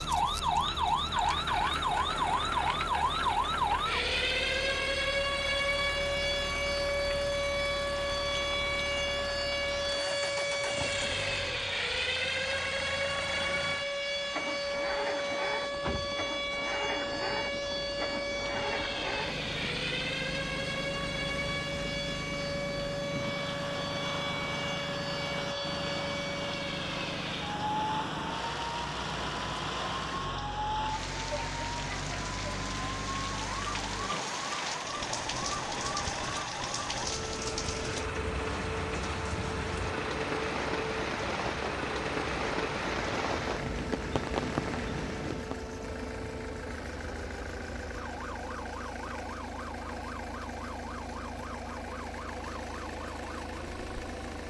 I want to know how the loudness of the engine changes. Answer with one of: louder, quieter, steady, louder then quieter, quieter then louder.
steady.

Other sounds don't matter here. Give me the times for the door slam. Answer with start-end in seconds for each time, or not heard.
not heard.